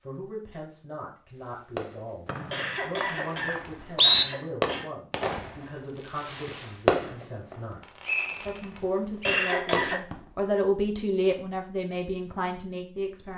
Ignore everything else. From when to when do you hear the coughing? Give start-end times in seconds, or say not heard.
2.5-4.9, 9.2-10.1.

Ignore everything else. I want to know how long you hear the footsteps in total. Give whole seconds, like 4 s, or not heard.
not heard.